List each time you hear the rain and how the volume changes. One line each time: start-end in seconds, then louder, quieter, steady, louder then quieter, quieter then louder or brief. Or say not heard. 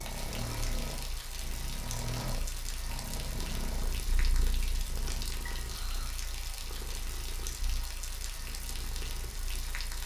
0.0-10.0 steady.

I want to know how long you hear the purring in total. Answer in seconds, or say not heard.
10 s.